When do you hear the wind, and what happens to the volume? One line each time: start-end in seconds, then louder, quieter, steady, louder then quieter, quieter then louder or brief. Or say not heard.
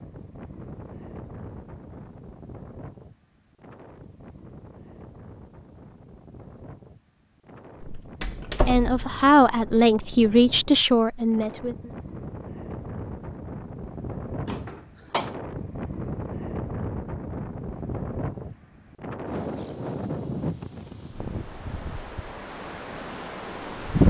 0.0-24.0 louder.